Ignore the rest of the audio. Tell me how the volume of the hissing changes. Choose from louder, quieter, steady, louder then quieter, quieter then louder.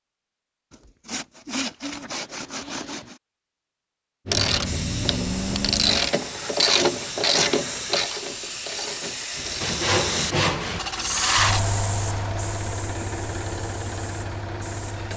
louder then quieter.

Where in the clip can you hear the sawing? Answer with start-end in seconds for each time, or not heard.
0.7-3.1, 9.6-11.6.